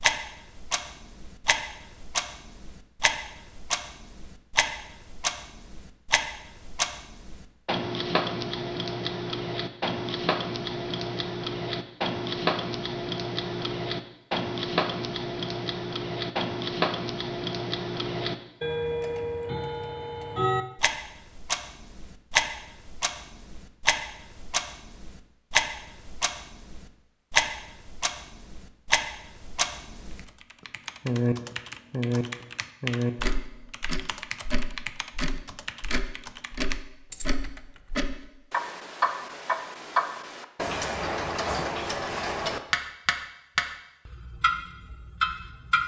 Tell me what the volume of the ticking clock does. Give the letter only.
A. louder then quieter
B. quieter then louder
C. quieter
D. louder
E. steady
E.